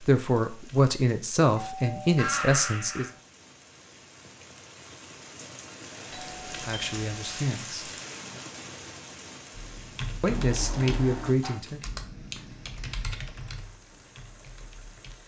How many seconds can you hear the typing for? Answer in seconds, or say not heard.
6 s.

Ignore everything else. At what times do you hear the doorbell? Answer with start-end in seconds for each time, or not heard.
1.6-3.2, 6.1-7.5, 10.2-11.6.